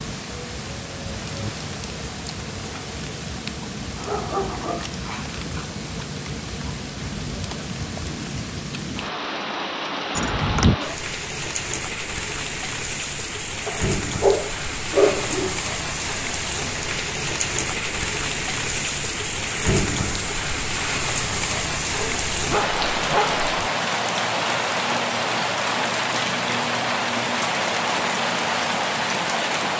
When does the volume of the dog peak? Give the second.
15 s.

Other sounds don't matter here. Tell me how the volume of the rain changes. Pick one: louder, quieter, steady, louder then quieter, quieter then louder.
louder.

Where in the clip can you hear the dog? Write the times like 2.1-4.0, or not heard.
4.0-5.7, 13.7-15.6, 21.9-23.7.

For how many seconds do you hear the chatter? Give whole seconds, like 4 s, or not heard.
not heard.